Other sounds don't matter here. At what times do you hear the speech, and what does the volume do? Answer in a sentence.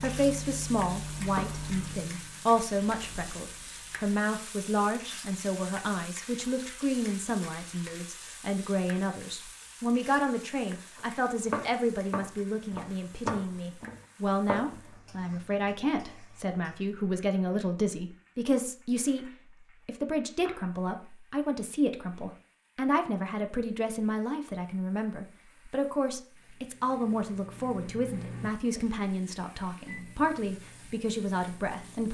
You can hear the speech from 0.0 to 32.1 s, at a steady volume.